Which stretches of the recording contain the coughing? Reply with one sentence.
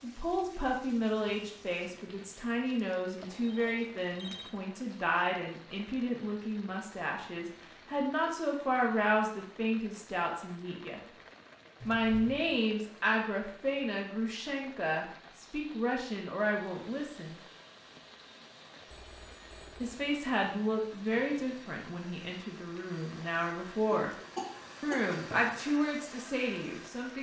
The coughing can be heard from 23.9 to 25.6 s.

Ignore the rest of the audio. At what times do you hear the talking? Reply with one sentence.
The talking can be heard from 0.0 to 11.0 s, from 11.8 to 17.4 s, from 19.8 to 24.1 s and from 24.8 to 27.1 s.